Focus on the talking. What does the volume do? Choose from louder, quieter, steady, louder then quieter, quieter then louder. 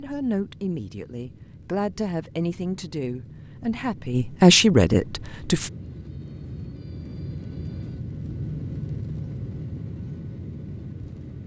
louder.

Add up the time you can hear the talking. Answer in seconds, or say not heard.
6 s.